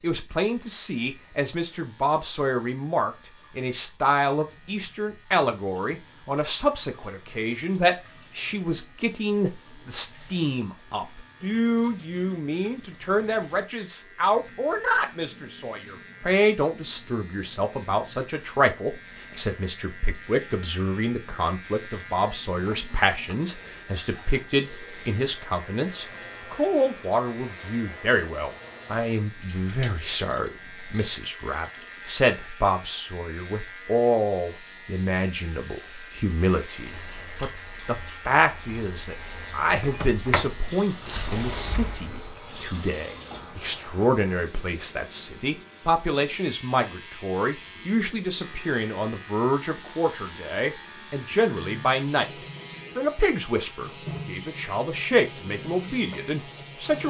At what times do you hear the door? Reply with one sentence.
You can hear the door from 39.8 to 42.2 s.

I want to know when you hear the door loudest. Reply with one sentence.
The volume of the door peaks at 40 seconds.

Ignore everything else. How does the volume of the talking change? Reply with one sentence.
The volume of the talking stays about the same.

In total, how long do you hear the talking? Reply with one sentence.
You can hear the talking for 56 seconds altogether.